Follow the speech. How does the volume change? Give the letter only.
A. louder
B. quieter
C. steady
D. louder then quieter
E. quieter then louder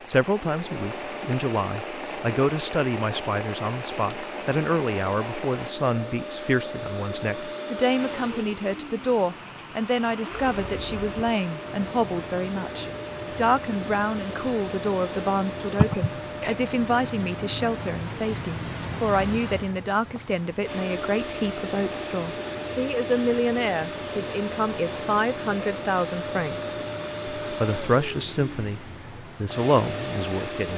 C.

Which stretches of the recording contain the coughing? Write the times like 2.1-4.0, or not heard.
15.8-16.6.